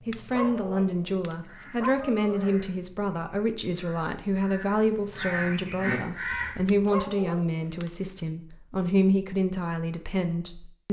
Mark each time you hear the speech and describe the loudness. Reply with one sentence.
You can hear the speech from 0.1 to 10.8 s, at a steady volume.